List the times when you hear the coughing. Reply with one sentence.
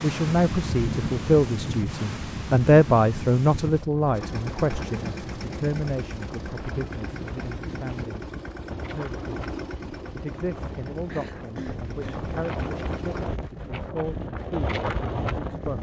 You can hear the coughing from 11.1 to 12.2 s.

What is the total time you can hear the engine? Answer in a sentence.
The engine can be heard for 9 seconds in total.